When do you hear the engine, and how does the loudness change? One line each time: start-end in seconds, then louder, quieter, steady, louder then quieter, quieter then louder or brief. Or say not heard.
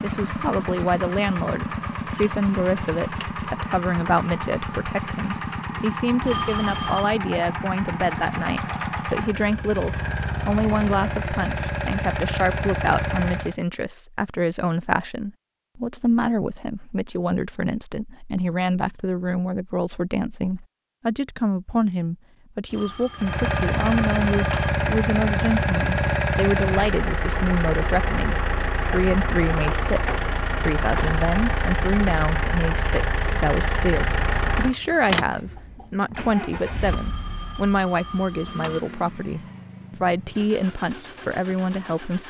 0.0-13.6 steady
23.1-42.2 quieter.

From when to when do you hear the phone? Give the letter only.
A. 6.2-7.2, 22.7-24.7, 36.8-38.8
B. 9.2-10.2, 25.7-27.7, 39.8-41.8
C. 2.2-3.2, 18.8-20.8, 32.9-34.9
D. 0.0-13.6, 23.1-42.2
A.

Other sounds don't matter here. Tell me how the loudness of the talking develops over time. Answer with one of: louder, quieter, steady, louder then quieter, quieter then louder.
steady.